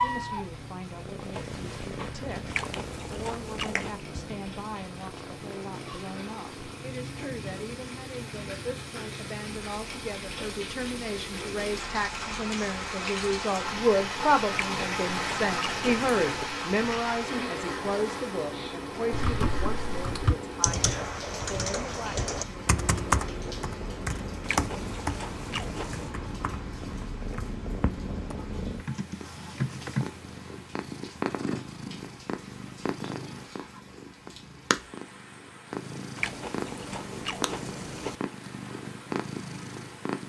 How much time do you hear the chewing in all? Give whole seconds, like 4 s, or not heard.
7 s.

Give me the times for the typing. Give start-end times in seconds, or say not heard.
19.1-30.1.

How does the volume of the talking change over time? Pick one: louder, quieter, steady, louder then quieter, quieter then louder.
louder then quieter.